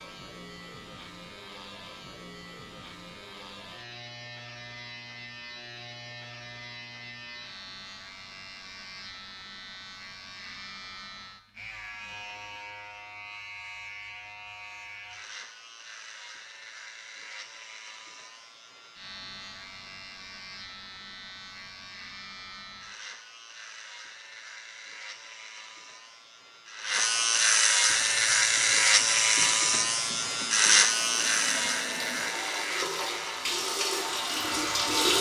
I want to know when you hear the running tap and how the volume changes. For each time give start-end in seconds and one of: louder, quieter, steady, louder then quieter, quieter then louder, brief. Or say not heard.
27.9-35.1 louder.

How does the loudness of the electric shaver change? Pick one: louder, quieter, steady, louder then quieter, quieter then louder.
louder.